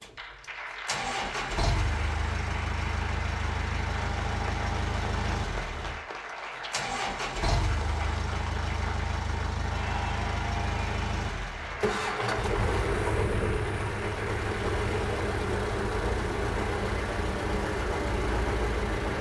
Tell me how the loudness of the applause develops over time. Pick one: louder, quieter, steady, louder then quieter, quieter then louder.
steady.